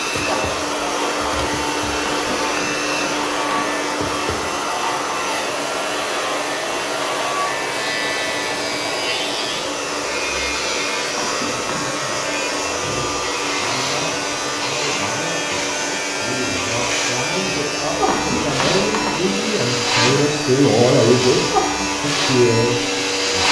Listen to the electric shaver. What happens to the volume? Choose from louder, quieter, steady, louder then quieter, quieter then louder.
louder.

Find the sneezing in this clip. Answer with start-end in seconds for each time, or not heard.
not heard.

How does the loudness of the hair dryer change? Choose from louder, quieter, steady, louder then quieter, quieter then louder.
quieter.